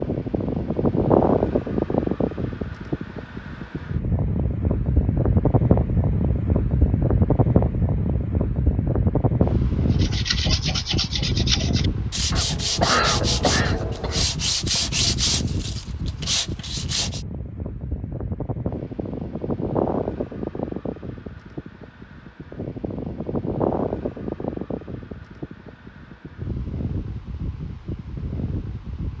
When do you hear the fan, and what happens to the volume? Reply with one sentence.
The fan can be heard from 0.0 to 29.1 s, getting quieter.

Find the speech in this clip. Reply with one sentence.
The speech can't be heard in this clip.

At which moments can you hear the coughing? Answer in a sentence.
You can hear the coughing from 12.3 to 14.2 s.